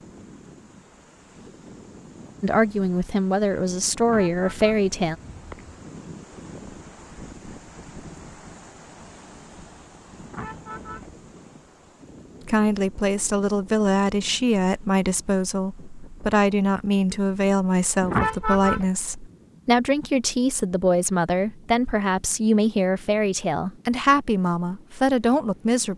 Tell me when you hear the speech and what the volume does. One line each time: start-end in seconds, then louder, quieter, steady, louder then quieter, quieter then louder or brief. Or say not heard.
2.4-5.2 brief
12.4-25.9 steady.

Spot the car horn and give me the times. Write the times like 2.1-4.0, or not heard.
4.0-5.8, 10.2-11.2, 18.0-18.9.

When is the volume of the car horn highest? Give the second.
18 s.